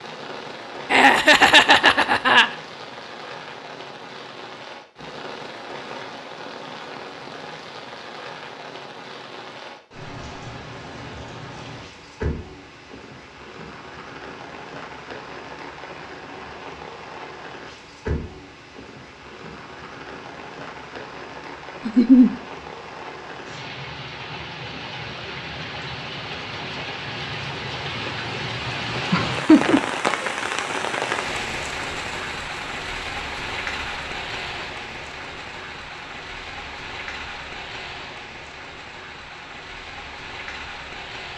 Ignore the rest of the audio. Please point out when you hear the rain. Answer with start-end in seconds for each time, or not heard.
0.0-41.3.